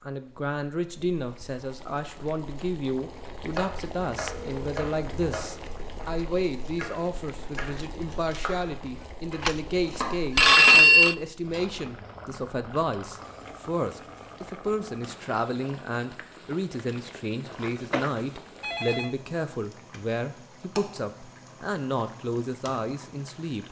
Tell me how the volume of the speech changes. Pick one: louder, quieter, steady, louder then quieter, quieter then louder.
steady.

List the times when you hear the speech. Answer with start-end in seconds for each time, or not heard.
0.0-23.6.